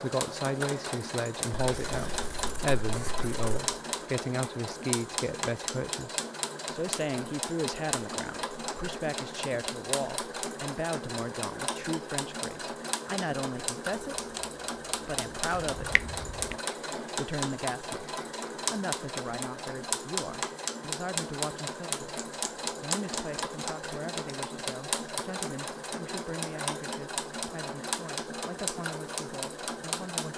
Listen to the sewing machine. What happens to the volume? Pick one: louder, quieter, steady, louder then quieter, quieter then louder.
steady.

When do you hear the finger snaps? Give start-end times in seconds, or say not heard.
15.6-16.6.